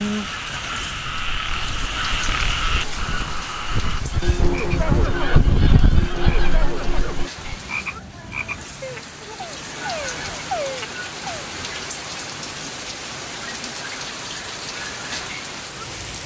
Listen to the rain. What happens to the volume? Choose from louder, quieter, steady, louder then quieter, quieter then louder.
quieter then louder.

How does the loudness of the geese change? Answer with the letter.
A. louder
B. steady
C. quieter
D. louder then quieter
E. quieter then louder
D.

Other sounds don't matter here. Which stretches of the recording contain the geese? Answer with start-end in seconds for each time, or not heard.
1.1-7.5.